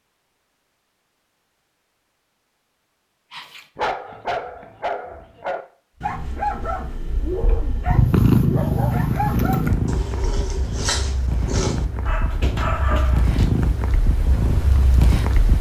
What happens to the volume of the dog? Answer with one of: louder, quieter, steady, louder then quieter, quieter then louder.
steady.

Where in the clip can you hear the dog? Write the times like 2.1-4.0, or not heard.
3.3-13.7.